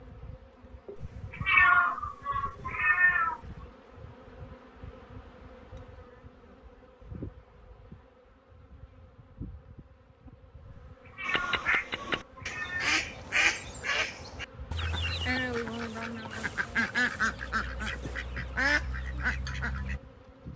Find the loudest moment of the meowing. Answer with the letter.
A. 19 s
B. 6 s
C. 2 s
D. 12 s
C.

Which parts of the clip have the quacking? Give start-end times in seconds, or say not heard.
11.2-20.0.